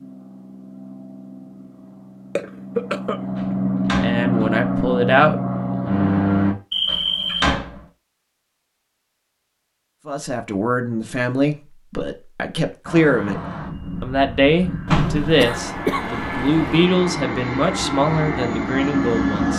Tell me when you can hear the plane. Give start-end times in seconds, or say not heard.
0.0-6.5, 12.8-19.5.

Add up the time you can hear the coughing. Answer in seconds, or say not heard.
4 s.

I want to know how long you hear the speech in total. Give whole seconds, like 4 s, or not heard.
11 s.